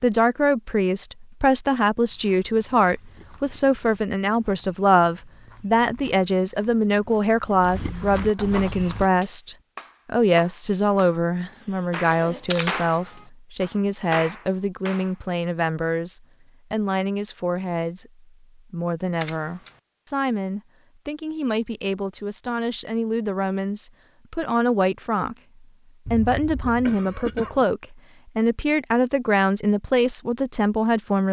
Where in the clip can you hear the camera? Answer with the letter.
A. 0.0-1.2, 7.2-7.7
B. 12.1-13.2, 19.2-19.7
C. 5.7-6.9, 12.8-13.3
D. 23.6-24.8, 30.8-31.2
B.